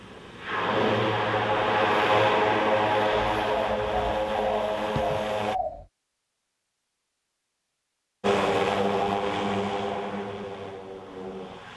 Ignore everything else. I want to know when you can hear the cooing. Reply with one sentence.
You can hear the cooing from 3.3 to 5.8 s.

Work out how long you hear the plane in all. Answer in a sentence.
You can hear the plane for 9 seconds altogether.